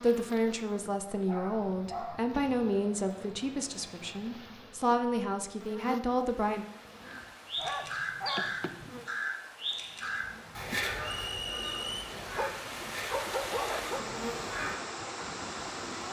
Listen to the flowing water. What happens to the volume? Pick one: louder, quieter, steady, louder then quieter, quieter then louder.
louder.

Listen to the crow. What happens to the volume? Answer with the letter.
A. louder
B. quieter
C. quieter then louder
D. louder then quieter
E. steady
B.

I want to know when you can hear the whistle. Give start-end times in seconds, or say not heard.
11.1-12.2.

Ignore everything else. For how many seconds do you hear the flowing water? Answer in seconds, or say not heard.
10 s.